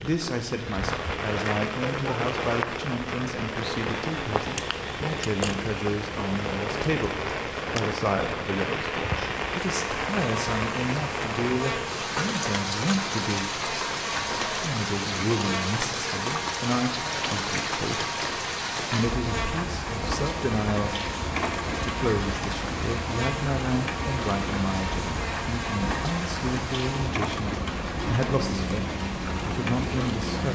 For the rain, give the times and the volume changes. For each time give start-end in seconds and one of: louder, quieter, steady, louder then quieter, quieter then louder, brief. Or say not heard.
0.0-30.5 steady.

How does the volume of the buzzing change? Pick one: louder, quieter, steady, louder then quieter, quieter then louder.
steady.